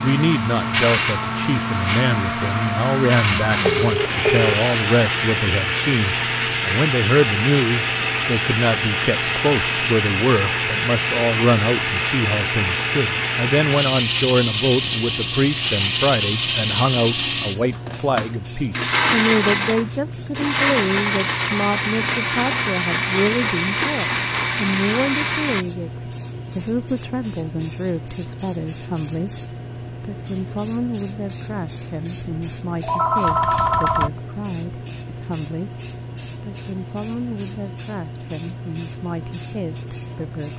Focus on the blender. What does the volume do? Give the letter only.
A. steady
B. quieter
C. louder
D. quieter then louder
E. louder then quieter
A.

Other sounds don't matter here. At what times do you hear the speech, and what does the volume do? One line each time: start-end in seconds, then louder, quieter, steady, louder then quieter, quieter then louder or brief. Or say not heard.
0.0-40.5 quieter.